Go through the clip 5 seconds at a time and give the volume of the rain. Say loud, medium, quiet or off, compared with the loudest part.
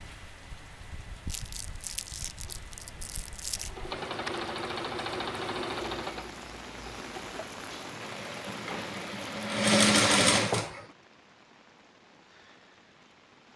loud, loud, quiet.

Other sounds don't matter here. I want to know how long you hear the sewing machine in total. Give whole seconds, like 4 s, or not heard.
8 s.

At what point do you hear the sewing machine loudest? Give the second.
10 s.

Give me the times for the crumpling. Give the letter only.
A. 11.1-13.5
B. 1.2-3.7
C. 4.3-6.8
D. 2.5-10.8
B.